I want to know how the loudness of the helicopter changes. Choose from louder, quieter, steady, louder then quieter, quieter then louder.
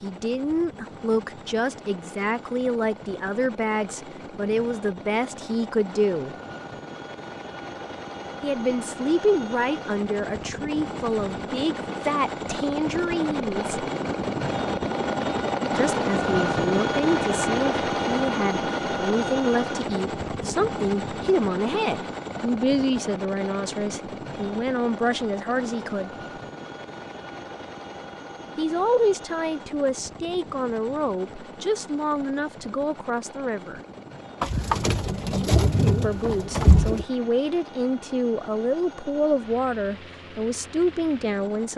louder then quieter.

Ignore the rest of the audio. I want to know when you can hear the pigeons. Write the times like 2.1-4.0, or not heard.
34.4-37.0.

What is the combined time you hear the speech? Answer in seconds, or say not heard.
33 s.